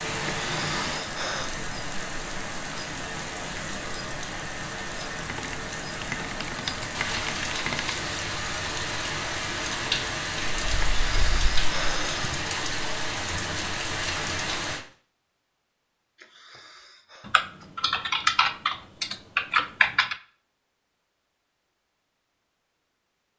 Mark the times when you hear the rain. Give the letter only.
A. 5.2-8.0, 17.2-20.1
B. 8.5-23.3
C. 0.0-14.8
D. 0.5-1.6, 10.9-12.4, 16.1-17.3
C.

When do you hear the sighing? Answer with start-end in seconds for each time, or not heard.
0.5-1.6, 10.9-12.4, 16.1-17.3.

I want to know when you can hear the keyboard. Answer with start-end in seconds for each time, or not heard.
5.2-8.0, 17.2-20.1.